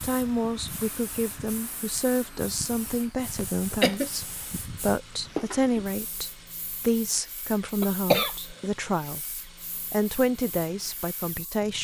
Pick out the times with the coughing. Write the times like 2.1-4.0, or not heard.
3.1-4.1, 7.8-8.3.